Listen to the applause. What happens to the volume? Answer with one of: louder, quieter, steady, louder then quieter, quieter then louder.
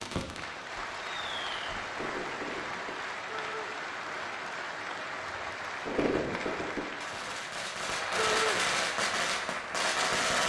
steady.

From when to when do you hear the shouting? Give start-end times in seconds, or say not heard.
3.3-3.7, 8.2-8.6.